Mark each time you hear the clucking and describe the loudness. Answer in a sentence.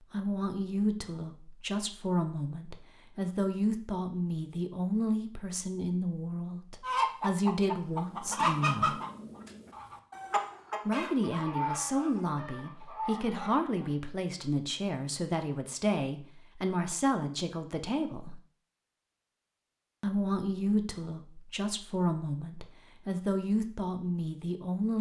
The clucking can be heard from 6.8 to 13.9 s, getting quieter.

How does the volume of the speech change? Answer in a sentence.
The loudness of the speech stays about the same.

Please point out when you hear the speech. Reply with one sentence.
You can hear the speech from 0.1 to 8.9 s, from 10.8 to 18.4 s and from 20.0 to 24.9 s.